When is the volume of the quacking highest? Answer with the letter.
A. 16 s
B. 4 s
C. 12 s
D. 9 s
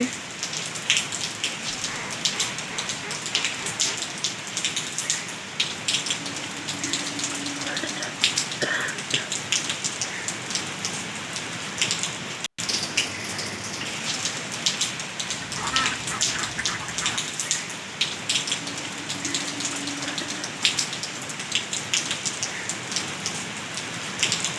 A.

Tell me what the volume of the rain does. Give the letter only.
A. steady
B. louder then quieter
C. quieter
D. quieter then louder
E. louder
A.